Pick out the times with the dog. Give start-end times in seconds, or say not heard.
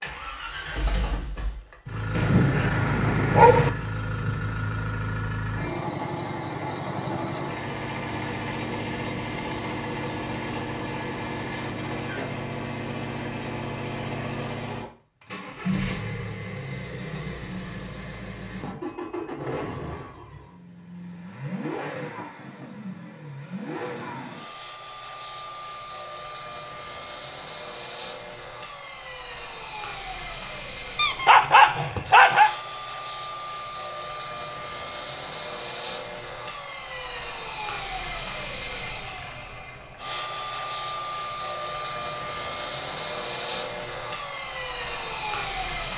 2.1-3.7, 30.9-32.5.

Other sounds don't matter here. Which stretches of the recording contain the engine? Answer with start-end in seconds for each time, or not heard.
0.0-45.9.